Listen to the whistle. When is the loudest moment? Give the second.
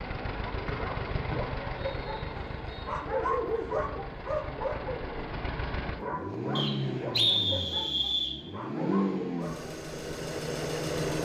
7 s.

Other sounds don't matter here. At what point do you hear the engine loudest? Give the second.
9 s.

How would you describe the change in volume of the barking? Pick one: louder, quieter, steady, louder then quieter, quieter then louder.
louder then quieter.